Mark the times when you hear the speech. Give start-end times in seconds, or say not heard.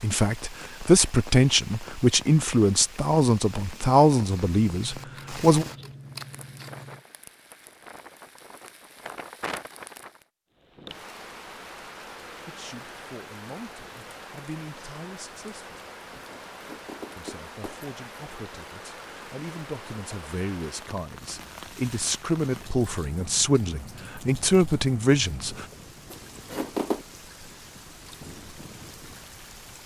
0.0-5.7, 12.3-15.8, 17.1-25.6.